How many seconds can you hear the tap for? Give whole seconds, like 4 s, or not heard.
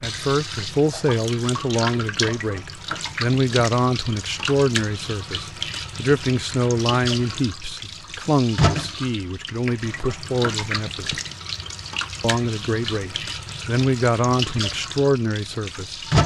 16 s.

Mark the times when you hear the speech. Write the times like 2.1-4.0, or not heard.
0.0-11.2, 12.2-16.0.